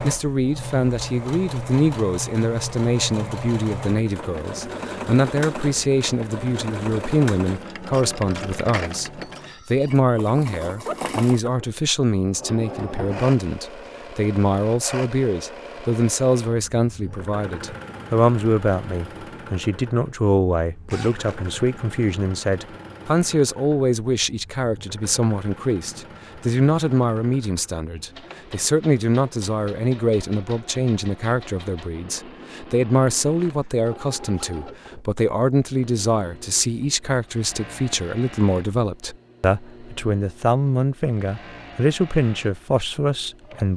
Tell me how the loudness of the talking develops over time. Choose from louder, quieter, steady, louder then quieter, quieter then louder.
steady.